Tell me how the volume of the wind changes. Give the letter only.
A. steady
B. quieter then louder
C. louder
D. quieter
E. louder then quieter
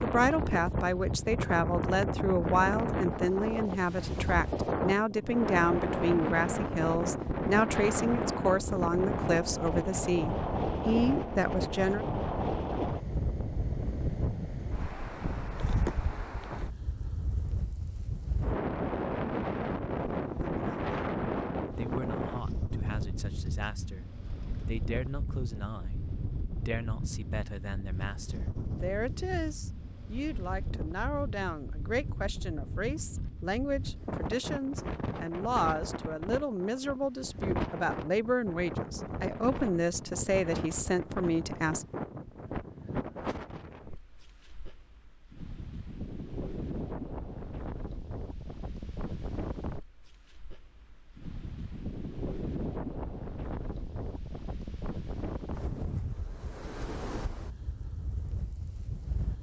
D.